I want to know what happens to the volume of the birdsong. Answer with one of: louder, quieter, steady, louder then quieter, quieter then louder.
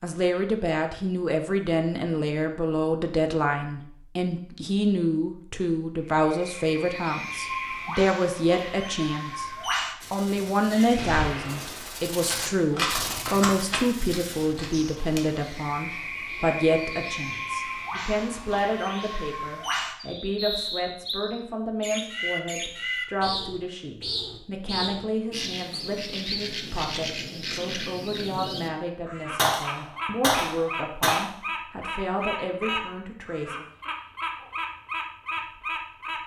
steady.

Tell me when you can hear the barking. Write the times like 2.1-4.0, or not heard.
not heard.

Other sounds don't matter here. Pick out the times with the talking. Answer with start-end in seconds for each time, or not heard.
0.0-9.4, 10.1-33.6.